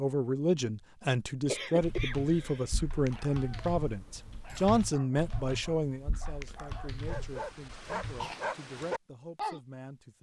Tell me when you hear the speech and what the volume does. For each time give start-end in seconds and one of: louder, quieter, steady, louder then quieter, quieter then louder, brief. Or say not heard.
0.0-10.1 quieter.